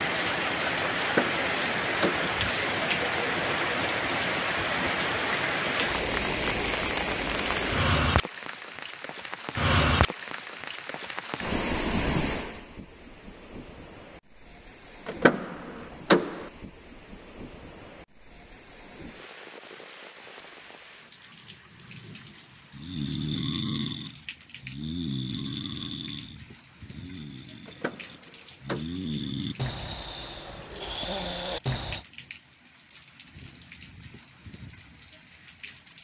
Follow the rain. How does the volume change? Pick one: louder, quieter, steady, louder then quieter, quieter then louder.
quieter.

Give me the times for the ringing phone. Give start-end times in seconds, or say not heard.
not heard.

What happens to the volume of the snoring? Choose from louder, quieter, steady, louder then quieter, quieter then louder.
quieter then louder.